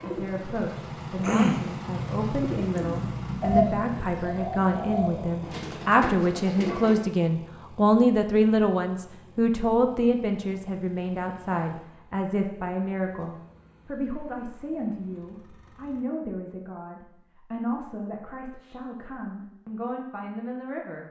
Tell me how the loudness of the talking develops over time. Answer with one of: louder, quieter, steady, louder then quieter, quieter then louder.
louder then quieter.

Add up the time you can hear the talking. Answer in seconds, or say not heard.
21 s.